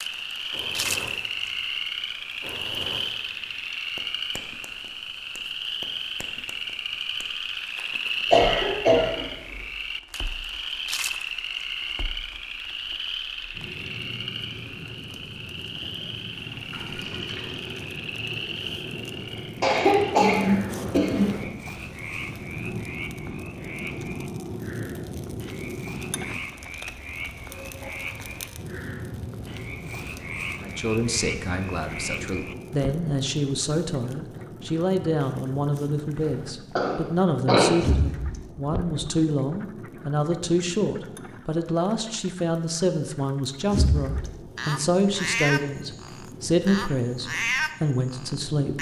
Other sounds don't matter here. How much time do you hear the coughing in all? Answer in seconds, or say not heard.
4 s.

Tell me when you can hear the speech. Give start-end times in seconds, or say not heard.
30.6-48.7.